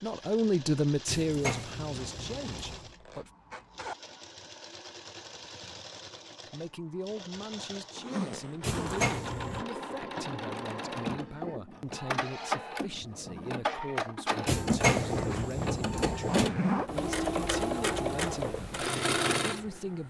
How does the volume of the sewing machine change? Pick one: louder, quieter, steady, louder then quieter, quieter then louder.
louder.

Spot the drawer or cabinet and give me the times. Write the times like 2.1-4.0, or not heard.
1.1-2.9, 8.6-9.7, 14.4-16.5.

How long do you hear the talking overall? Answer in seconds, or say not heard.
17 s.